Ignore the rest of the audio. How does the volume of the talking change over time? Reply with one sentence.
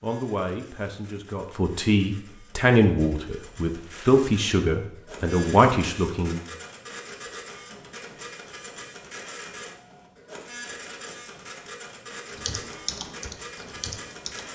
The volume of the talking goes up.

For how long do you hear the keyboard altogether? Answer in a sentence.
You can hear the keyboard for 2 seconds altogether.